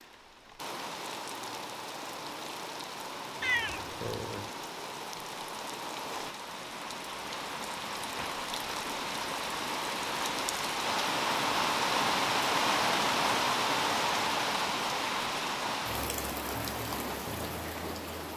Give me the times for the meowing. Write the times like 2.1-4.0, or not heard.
3.4-4.5.